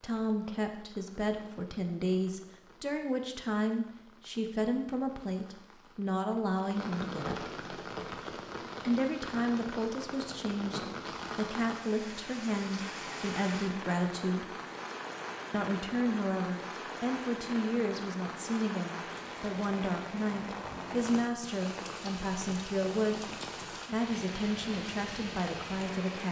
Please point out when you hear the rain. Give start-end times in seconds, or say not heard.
0.0-26.2.